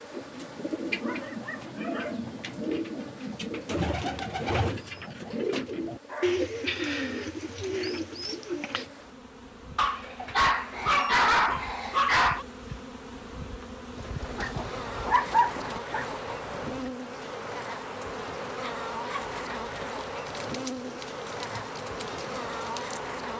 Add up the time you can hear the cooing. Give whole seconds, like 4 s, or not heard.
15 s.